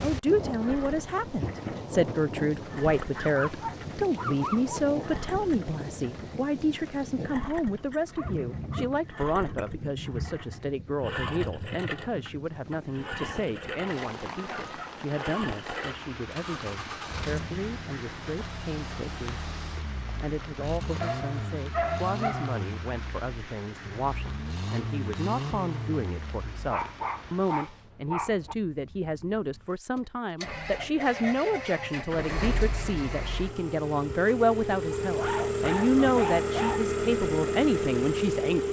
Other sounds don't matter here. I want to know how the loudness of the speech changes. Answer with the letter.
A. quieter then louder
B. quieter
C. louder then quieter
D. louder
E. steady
A.